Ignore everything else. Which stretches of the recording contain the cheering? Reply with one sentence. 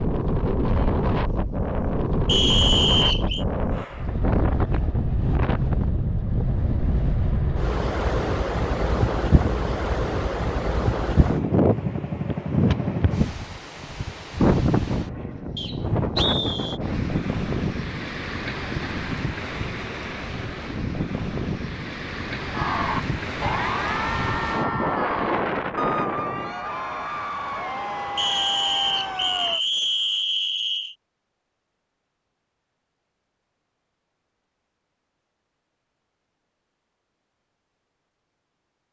You can hear the cheering from 22.5 to 29.6 s.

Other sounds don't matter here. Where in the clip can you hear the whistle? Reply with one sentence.
You can hear the whistle from 2.2 to 3.5 s, from 15.6 to 16.8 s and from 28.1 to 30.9 s.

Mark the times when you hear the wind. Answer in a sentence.
The wind can be heard from 0.0 to 26.6 s.